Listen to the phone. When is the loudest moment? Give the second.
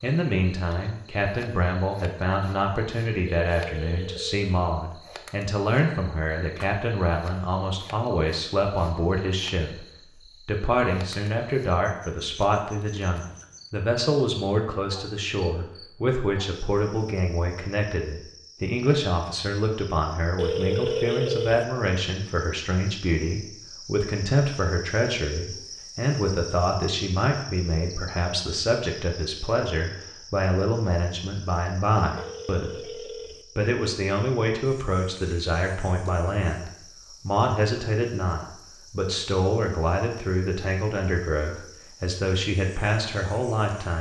21 s.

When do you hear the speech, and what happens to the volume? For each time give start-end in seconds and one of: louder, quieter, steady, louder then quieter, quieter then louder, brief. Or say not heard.
0.0-9.8 steady
10.4-43.9 steady.